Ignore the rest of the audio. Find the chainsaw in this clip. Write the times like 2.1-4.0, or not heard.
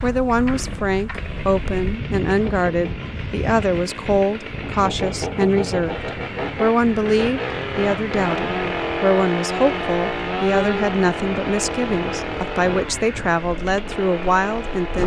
0.0-15.0.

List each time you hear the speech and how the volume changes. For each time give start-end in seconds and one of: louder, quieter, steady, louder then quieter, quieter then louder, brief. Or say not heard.
0.0-6.0 steady
6.5-15.0 steady.